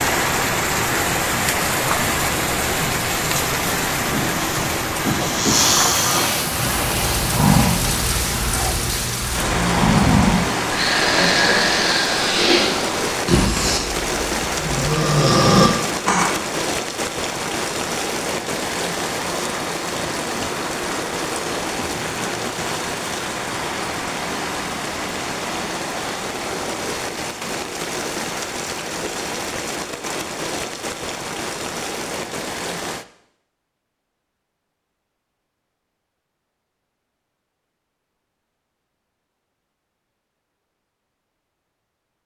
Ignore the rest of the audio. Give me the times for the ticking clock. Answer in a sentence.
You can't hear the ticking clock here.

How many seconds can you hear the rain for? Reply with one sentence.
The rain can be heard for 33 seconds in total.